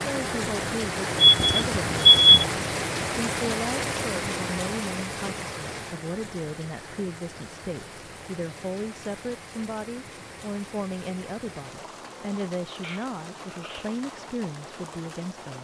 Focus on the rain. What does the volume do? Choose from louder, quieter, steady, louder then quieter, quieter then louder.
quieter.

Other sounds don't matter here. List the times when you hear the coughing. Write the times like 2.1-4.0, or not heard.
12.8-13.9.